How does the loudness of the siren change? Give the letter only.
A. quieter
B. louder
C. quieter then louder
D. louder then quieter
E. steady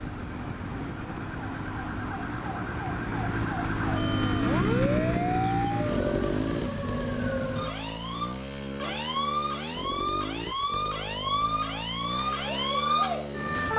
B.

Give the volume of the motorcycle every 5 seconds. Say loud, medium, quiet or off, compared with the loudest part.
loud, loud, medium.